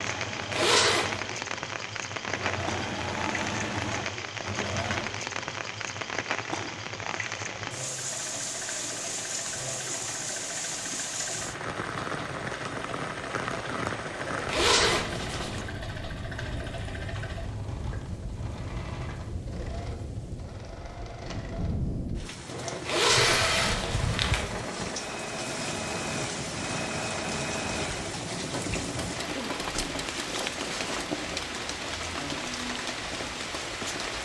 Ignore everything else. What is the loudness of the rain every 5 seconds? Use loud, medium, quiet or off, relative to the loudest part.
loud, loud, loud, medium, loud, loud, loud.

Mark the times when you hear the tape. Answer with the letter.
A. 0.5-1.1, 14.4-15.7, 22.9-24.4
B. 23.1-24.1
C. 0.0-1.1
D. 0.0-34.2
B.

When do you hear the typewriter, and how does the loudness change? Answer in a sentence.
You can't hear the typewriter here.